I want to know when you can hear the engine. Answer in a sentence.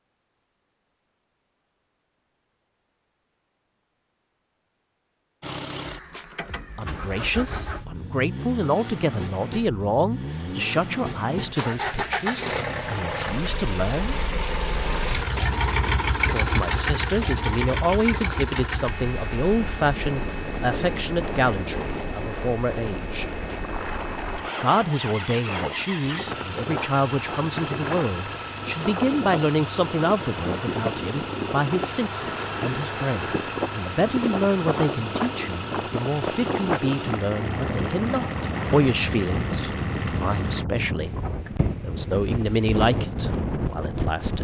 The engine can be heard from 5.4 to 40.6 s.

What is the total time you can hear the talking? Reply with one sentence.
The talking can be heard for 34 seconds in total.